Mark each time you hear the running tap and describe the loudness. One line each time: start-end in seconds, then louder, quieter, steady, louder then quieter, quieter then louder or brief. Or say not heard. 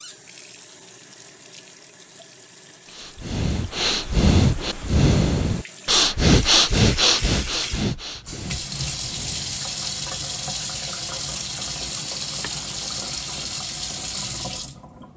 0.0-15.1 louder.